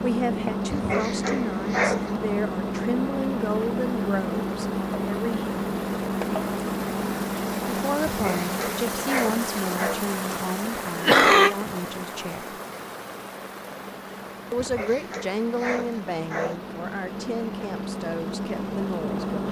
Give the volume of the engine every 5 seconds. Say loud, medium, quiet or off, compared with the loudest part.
loud, loud, quiet, medium.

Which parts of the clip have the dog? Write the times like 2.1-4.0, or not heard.
0.7-2.1, 8.1-10.0, 14.6-16.6.